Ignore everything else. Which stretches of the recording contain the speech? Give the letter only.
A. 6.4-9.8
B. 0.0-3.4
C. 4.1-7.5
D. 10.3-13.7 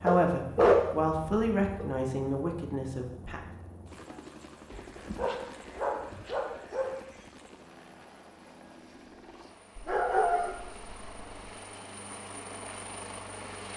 B.